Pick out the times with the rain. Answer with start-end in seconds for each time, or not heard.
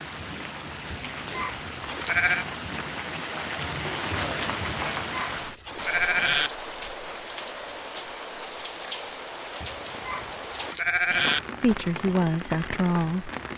0.0-13.5.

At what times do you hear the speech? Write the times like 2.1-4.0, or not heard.
11.6-13.3.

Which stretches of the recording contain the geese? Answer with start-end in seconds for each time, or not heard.
not heard.